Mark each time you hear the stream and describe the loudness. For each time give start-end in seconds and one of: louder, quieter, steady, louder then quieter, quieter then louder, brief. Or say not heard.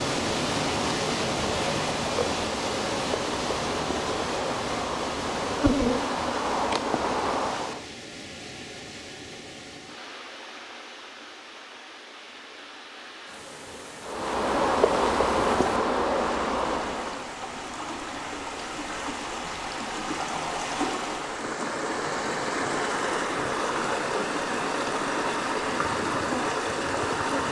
0.0-27.4 quieter then louder.